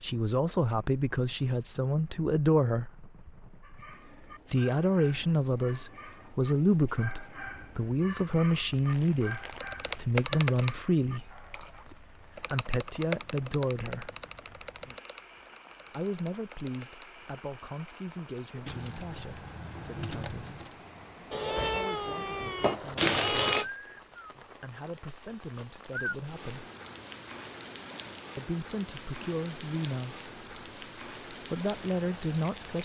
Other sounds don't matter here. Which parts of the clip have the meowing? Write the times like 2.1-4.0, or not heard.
21.3-23.6.